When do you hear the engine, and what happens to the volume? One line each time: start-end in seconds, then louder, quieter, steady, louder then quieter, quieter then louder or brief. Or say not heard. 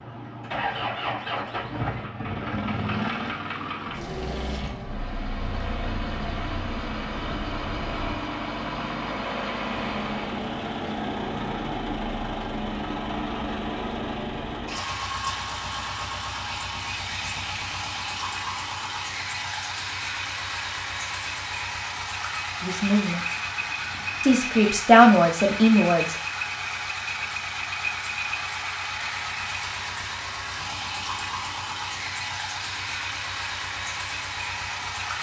0.0-35.1 steady.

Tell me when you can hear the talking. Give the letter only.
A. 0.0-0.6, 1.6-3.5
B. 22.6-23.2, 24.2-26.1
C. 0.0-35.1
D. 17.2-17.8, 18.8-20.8
B.